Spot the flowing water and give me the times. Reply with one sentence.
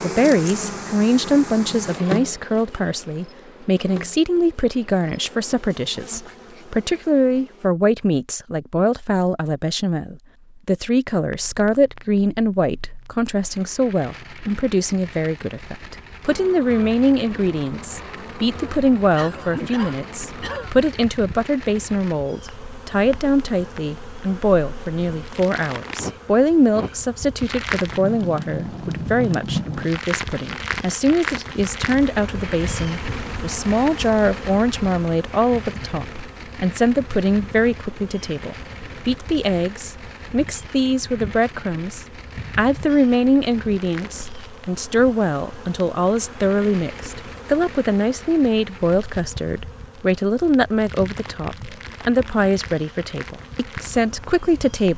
You can't hear the flowing water here.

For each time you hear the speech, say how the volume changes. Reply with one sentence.
The speech can be heard from 0.0 to 54.9 s, at a steady volume.